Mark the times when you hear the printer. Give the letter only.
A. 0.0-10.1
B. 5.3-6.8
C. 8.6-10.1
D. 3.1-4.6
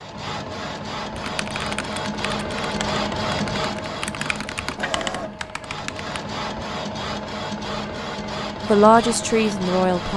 A.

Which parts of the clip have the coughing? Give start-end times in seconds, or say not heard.
not heard.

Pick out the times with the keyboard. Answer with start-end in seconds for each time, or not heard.
1.1-6.2.